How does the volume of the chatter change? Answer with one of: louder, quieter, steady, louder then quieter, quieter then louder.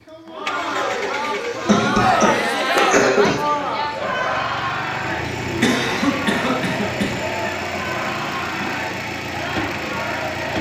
quieter.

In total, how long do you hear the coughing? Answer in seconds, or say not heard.
4 s.